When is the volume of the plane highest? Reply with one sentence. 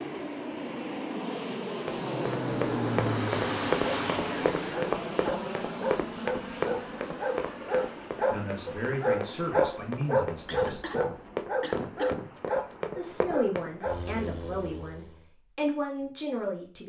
The volume of the plane peaks at 3 seconds.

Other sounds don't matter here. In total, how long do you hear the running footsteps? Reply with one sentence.
The running footsteps can be heard for 12 seconds in total.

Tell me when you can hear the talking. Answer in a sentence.
You can hear the talking from 8.3 to 10.8 s and from 12.9 to 16.8 s.